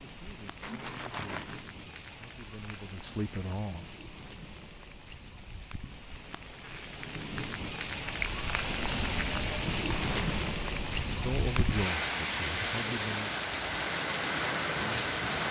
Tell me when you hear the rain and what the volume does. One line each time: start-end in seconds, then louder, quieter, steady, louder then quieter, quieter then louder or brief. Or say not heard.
0.0-15.4 louder.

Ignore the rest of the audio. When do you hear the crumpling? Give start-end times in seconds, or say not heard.
0.6-1.6, 9.8-10.4.